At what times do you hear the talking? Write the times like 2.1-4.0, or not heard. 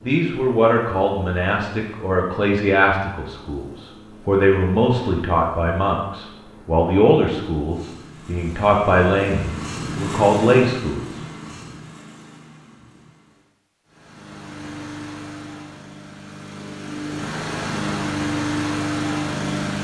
0.1-11.0.